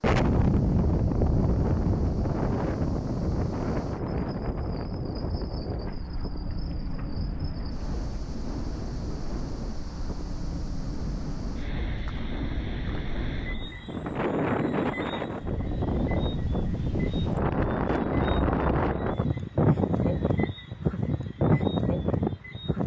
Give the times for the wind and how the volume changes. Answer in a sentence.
The wind can be heard from 0.0 to 22.8 s, getting quieter then louder.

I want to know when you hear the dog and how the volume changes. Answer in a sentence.
You can't hear the dog here.